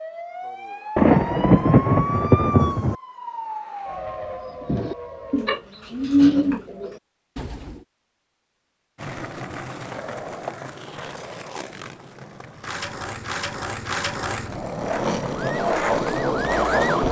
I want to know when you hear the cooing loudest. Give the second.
6 s.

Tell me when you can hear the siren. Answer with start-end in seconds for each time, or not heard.
0.0-5.7, 15.3-17.0.